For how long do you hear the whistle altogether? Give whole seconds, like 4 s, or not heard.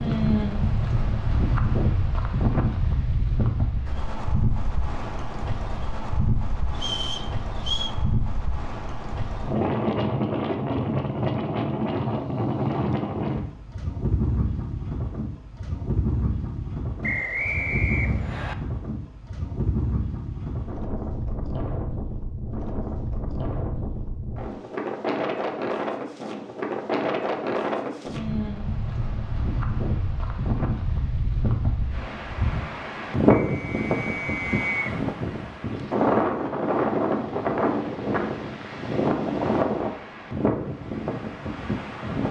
4 s.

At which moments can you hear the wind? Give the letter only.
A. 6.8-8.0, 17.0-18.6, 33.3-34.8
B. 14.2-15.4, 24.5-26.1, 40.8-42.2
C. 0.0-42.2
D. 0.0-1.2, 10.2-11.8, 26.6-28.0
C.